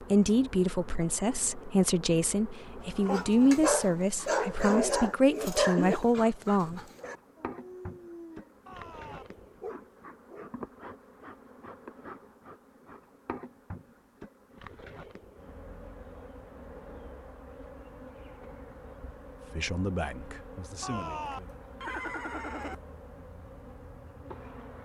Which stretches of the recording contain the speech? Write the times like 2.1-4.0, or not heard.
0.0-6.8, 19.5-21.6.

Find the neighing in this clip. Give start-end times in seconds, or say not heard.
3.0-3.5, 8.7-9.2, 20.8-22.8.